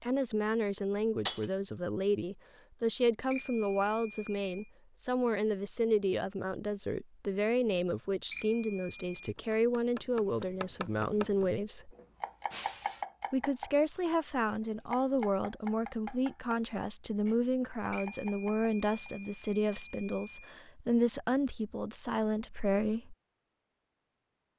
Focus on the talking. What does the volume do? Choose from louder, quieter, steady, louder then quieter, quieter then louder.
steady.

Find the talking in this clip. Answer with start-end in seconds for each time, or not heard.
0.0-11.9, 13.3-23.1.